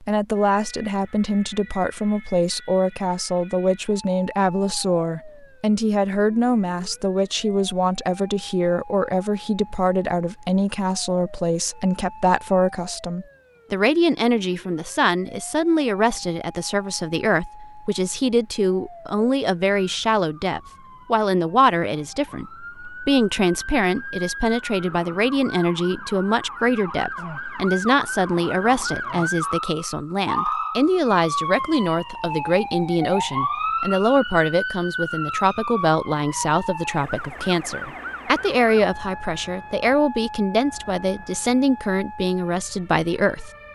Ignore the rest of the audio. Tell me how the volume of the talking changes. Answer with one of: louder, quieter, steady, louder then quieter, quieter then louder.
steady.